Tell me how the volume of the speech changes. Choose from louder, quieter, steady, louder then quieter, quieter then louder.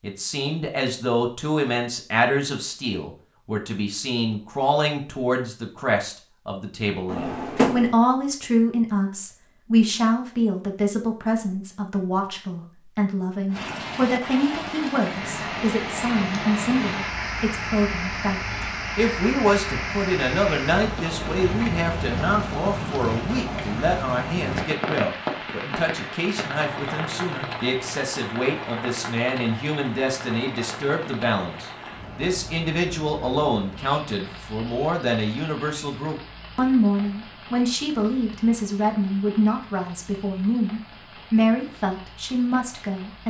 steady.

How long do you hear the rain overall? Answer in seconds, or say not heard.
30 s.